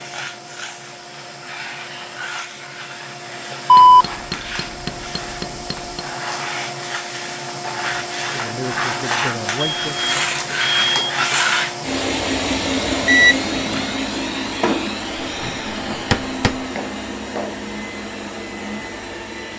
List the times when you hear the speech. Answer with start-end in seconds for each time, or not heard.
8.2-10.1.